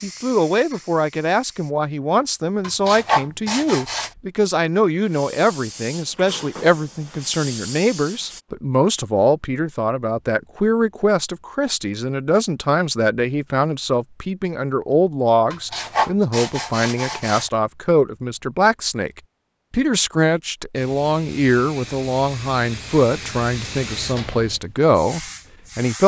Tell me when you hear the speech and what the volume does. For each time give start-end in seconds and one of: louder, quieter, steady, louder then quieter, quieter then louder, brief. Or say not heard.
0.0-26.0 steady.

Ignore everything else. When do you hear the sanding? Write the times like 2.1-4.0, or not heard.
2.6-4.1, 15.5-17.4.